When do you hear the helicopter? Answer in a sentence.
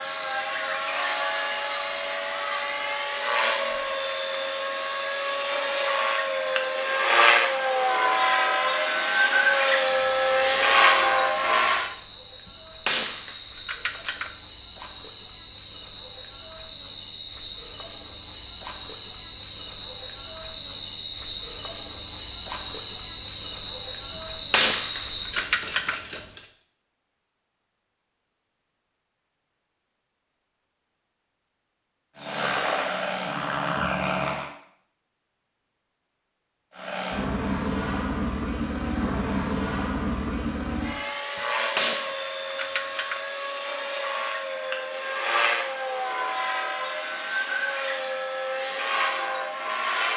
You can hear the helicopter from 0.0 to 11.9 s, from 32.1 to 34.5 s and from 36.8 to 50.1 s.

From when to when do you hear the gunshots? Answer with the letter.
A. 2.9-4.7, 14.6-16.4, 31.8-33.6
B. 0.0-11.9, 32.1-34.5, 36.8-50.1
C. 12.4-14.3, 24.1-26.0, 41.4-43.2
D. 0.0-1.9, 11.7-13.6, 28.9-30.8
C.